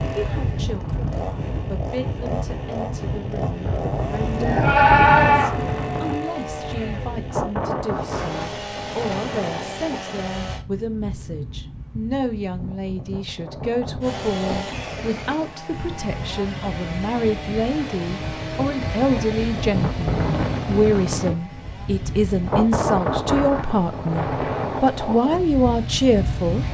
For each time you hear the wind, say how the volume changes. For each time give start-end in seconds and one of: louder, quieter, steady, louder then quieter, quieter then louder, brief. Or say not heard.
0.0-26.6 quieter then louder.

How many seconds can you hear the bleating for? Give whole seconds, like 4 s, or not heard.
2 s.